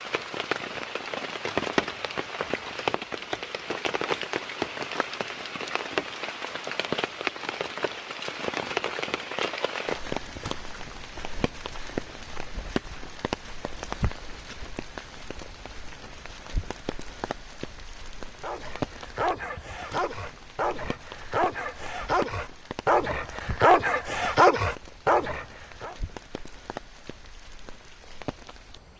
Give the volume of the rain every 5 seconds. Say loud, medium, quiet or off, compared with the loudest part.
loud, loud, medium, medium, quiet, quiet.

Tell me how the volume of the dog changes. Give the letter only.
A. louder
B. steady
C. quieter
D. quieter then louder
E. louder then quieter
A.